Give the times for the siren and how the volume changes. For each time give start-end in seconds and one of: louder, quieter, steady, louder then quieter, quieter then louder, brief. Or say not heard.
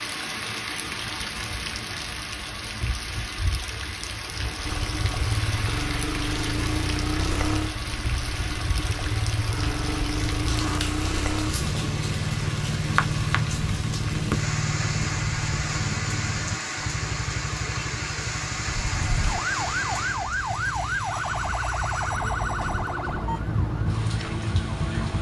18.6-25.1 steady.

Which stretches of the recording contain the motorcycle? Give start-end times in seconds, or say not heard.
4.6-25.1.